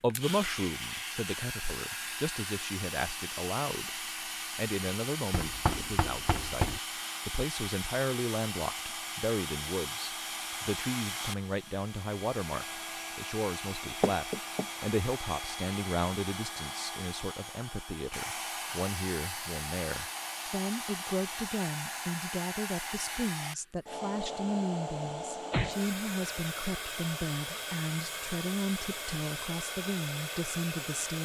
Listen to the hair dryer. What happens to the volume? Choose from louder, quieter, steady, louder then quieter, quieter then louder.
steady.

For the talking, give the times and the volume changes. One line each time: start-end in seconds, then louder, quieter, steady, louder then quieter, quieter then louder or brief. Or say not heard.
0.0-31.2 steady.